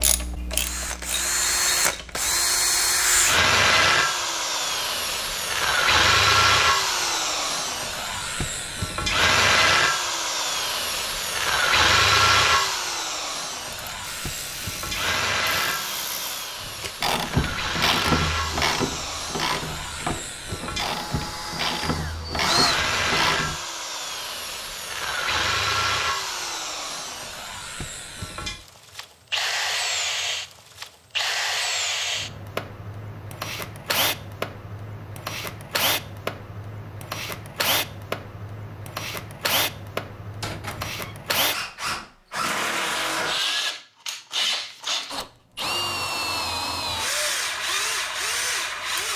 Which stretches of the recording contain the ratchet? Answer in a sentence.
The ratchet can be heard from 0.0 to 2.4 s and from 13.7 to 23.6 s.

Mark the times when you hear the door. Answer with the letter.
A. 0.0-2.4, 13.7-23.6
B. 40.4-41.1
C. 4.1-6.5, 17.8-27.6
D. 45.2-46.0
B.